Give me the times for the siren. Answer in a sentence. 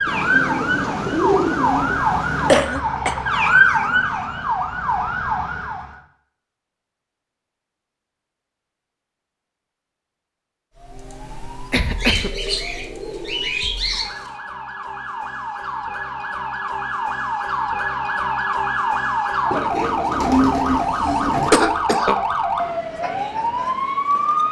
The siren can be heard from 0.0 to 6.0 s and from 10.8 to 24.4 s.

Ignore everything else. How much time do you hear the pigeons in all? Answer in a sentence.
You can hear the pigeons for 7 seconds altogether.